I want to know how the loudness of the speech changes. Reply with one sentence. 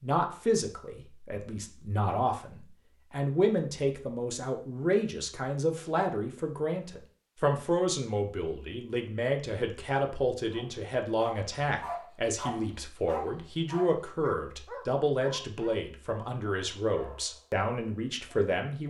The volume of the speech stays about the same.